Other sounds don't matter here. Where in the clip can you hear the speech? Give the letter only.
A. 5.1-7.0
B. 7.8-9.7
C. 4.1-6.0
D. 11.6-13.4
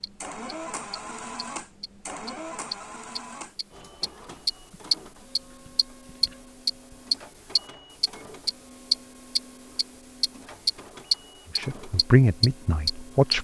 D.